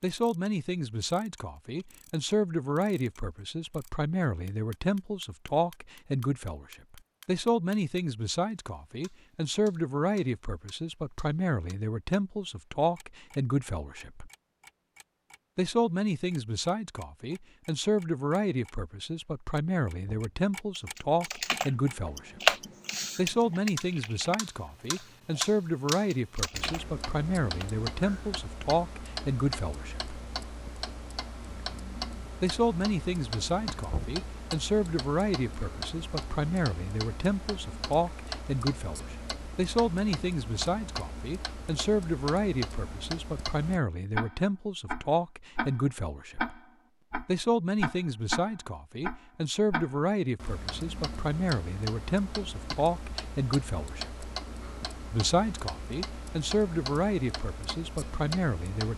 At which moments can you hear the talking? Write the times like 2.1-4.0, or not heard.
0.0-14.3, 15.6-22.6, 23.1-30.2, 32.4-46.5, 47.2-54.3, 55.1-58.9.